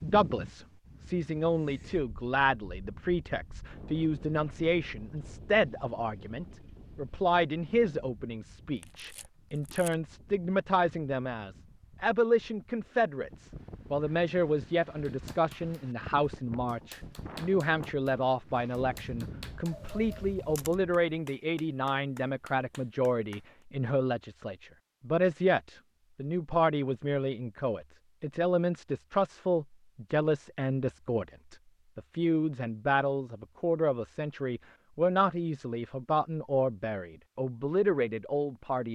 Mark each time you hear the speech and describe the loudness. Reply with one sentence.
The speech can be heard from 0.0 to 38.8 s, at a steady volume.